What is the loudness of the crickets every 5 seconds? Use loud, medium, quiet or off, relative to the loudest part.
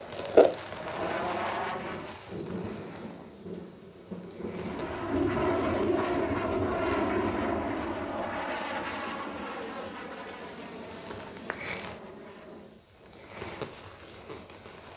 loud, quiet, medium.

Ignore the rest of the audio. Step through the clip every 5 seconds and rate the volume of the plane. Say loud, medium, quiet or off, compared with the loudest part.
medium, loud, quiet.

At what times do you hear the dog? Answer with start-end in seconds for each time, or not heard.
not heard.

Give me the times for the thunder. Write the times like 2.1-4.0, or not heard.
2.2-5.0.